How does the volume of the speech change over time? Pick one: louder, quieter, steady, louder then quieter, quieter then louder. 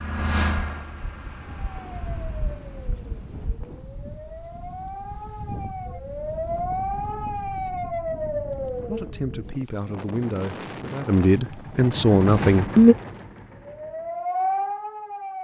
louder.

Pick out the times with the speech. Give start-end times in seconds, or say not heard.
8.8-12.9.